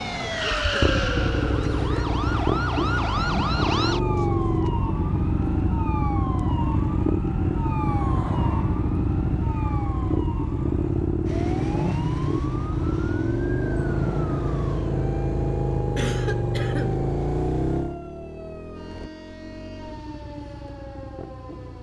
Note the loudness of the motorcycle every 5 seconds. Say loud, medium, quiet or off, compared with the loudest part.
loud, loud, loud, loud, quiet.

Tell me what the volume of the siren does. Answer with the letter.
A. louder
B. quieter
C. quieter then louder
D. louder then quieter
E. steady
B.